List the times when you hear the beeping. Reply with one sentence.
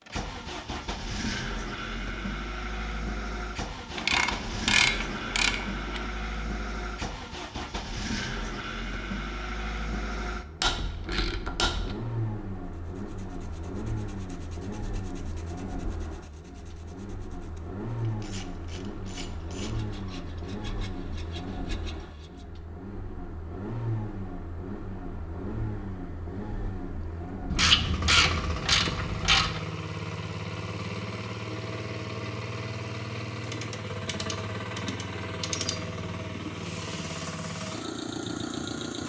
You can't hear the beeping here.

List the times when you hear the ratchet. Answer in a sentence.
You can hear the ratchet from 4.0 to 6.0 s, from 10.6 to 11.9 s, from 18.1 to 19.8 s, from 27.5 to 29.6 s and from 33.5 to 35.8 s.